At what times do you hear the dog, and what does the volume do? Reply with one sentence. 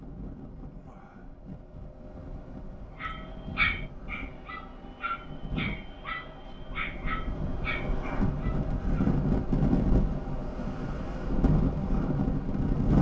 The dog can be heard from 3.0 to 9.1 s, getting quieter.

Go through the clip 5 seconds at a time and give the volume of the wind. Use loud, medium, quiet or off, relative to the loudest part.
quiet, loud, loud.